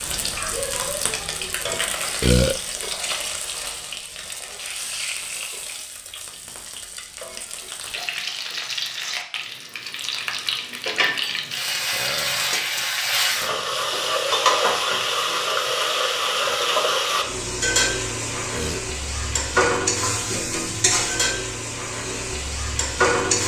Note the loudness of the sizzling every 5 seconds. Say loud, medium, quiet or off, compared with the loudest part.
medium, medium, loud, loud, loud.